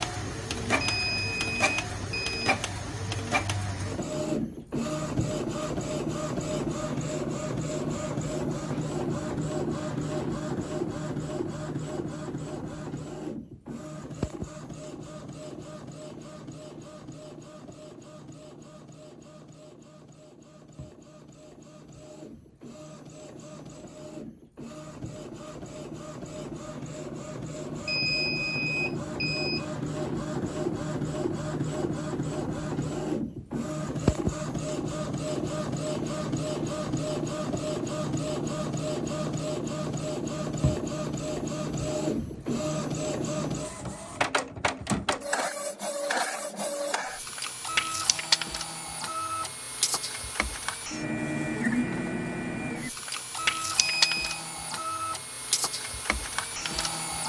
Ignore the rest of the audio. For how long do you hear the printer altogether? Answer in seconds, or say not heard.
57 s.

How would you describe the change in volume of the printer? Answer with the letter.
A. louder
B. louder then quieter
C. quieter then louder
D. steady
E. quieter
C.